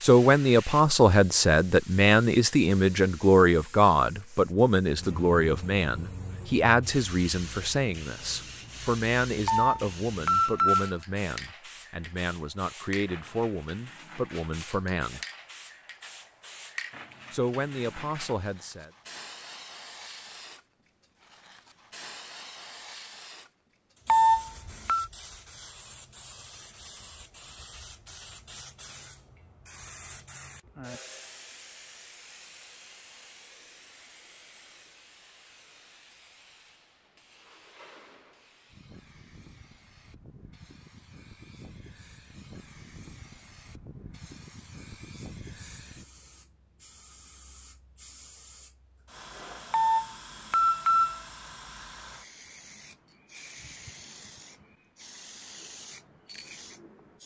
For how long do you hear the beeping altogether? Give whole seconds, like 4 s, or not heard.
4 s.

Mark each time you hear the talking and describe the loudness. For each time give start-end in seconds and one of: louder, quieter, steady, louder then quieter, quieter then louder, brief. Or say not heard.
0.0-15.2 quieter
17.3-18.9 brief.